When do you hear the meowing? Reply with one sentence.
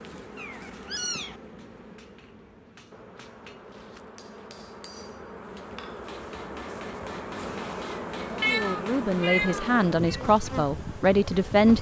The meowing can be heard from 0.3 to 1.4 s and from 8.4 to 10.2 s.